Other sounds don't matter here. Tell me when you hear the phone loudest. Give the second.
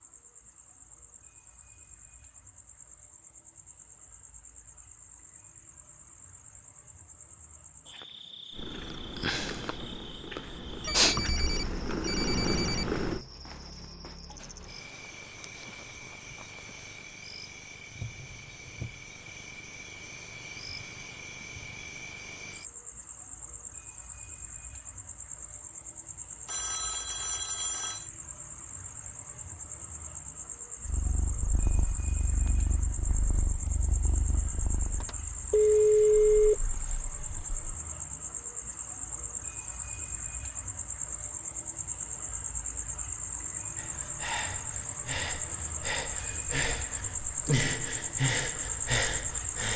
36 s.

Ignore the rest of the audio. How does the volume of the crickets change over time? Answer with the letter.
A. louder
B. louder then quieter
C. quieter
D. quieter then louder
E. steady
A.